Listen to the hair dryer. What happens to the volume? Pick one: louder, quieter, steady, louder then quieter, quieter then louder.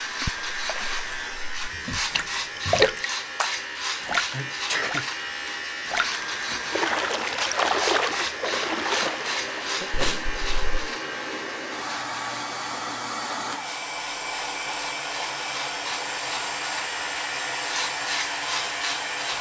louder.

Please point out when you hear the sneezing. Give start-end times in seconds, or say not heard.
4.0-5.0, 9.8-10.9.